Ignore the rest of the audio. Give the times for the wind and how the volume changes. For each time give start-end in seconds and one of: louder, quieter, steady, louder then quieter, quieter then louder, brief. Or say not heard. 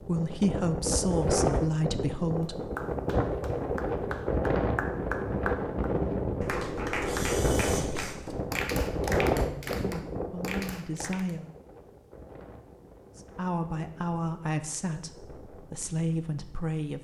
0.0-16.8 quieter.